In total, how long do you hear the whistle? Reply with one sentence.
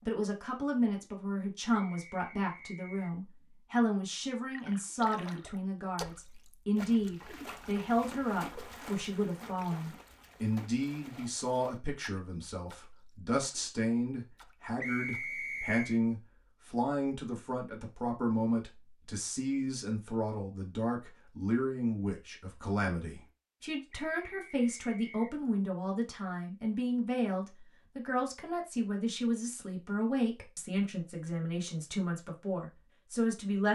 The whistle can be heard for 4 seconds in total.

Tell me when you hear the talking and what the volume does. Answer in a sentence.
You can hear the talking from 0.1 to 33.6 s, at a steady volume.